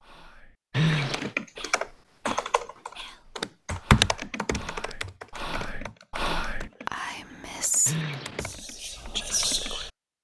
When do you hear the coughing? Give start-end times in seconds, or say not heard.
0.7-1.4, 7.8-8.4.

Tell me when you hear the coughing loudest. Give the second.
1 s.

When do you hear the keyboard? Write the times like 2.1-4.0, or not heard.
1.1-9.8.